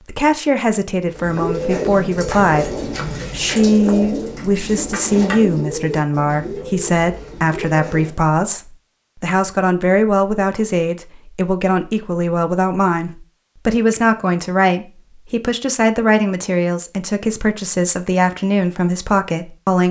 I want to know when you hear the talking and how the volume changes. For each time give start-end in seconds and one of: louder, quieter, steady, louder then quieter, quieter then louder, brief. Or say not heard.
0.1-19.8 steady.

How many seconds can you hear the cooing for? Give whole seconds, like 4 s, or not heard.
7 s.